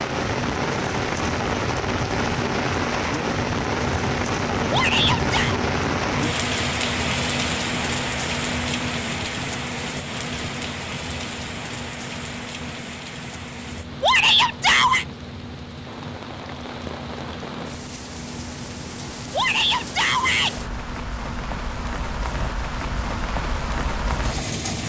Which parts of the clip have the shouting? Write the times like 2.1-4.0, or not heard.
4.7-5.6, 14.0-15.1, 19.3-20.6.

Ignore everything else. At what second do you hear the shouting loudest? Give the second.
14 s.